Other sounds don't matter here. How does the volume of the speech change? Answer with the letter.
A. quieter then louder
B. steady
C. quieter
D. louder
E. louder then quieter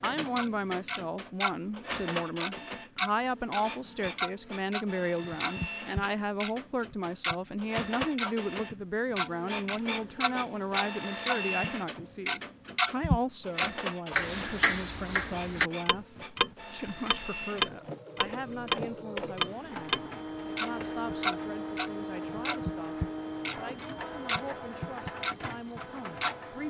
C.